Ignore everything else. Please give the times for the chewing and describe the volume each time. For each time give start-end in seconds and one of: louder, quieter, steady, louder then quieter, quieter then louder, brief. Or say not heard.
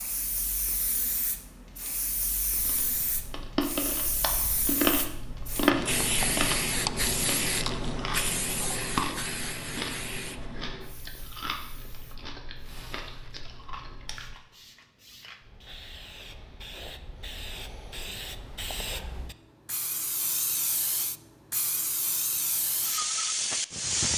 2.5-14.3 quieter.